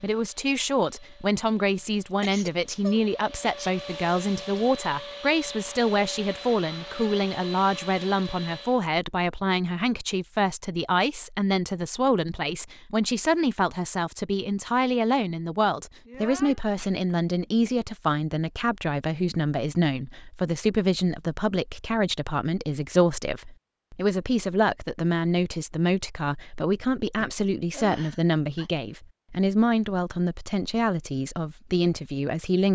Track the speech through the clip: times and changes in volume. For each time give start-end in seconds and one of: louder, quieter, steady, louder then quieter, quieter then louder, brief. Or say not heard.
0.0-32.6 steady.